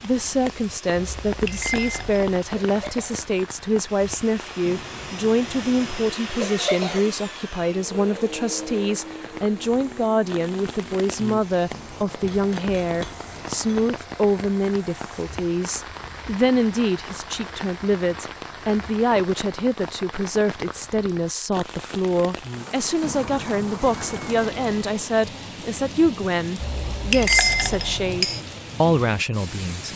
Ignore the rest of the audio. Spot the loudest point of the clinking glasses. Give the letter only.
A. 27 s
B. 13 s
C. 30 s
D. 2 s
A.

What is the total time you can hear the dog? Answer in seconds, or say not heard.
not heard.